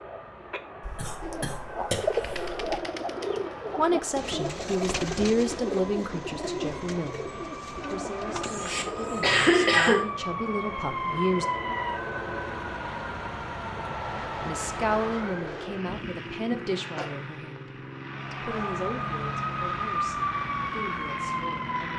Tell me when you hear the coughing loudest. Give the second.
10 s.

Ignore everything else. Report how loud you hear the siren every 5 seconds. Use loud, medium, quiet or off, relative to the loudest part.
quiet, medium, loud, loud, loud.